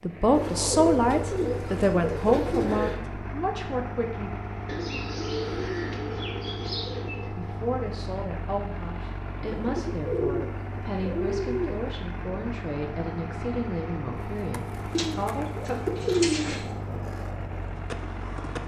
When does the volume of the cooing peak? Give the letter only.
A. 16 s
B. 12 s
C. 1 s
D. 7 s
A.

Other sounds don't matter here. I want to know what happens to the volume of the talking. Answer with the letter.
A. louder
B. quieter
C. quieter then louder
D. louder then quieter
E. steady
B.